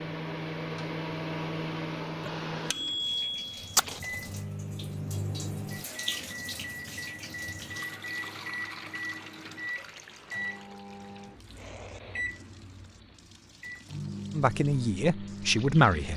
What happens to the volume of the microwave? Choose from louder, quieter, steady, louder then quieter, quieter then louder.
quieter.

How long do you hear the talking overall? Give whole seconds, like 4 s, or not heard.
2 s.